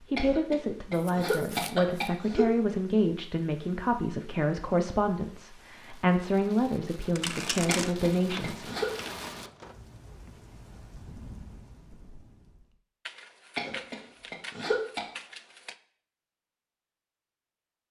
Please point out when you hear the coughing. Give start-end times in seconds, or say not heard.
0.1-2.5, 7.7-8.9, 13.6-15.1.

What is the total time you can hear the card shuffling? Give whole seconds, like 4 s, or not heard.
6 s.